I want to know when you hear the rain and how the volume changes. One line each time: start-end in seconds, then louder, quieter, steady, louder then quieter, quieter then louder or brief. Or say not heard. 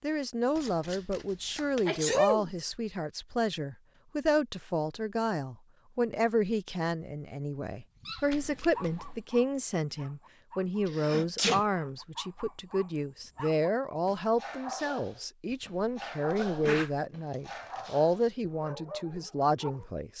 not heard.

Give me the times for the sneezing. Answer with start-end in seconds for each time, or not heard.
1.9-2.5, 10.8-11.7, 15.5-16.9.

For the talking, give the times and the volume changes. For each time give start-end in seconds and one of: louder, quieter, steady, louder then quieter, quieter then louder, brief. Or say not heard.
0.0-20.1 steady.